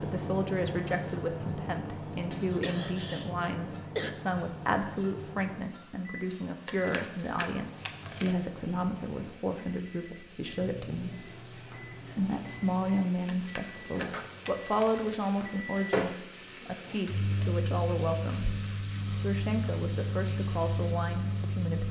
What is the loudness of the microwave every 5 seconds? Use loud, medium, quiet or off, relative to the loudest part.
loud, medium, medium, loud, loud.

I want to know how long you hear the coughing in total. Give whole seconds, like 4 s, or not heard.
2 s.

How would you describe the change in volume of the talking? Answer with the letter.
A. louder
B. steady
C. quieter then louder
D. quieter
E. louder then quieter
B.